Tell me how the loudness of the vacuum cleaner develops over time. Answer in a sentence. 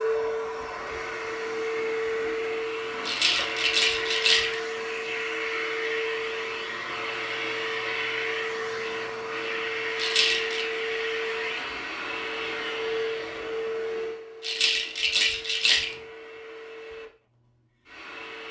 The loudness of the vacuum cleaner goes down.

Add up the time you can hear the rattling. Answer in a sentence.
The rattling can be heard for 4 seconds in total.